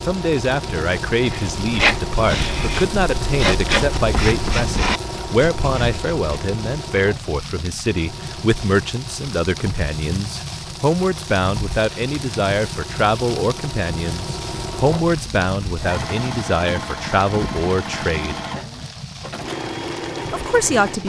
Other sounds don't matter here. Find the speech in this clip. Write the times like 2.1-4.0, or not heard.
0.0-18.4, 20.3-21.0.